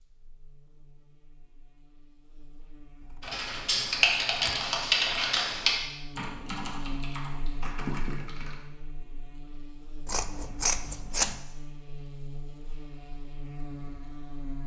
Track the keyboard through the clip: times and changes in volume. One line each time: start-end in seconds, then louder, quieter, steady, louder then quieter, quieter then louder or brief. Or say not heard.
3.2-8.6 quieter.